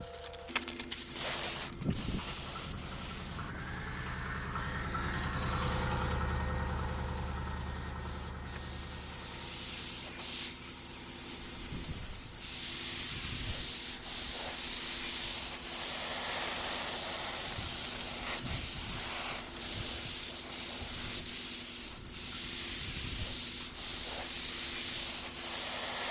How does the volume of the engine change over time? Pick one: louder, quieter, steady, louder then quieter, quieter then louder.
quieter.